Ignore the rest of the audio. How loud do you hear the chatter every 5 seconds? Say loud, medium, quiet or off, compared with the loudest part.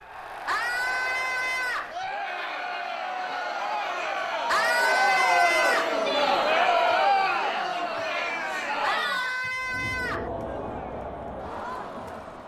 medium, loud, medium.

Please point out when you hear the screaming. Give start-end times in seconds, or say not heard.
0.5-1.9, 4.5-6.0, 8.8-10.3.